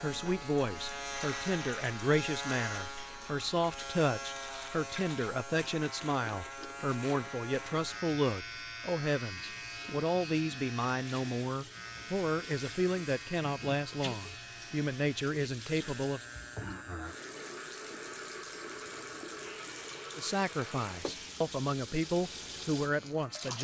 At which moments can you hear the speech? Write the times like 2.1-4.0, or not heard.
0.0-16.2, 20.1-23.5.